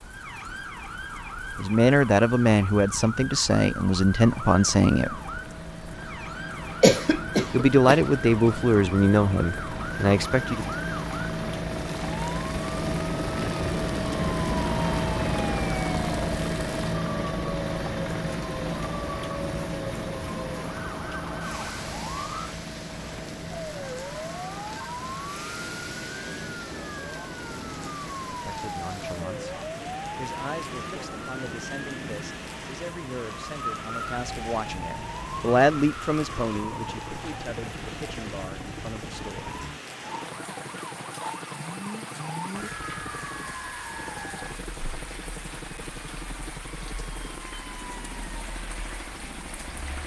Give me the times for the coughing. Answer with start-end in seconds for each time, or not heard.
6.8-8.0.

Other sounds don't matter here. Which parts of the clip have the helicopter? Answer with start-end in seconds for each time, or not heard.
4.2-50.0.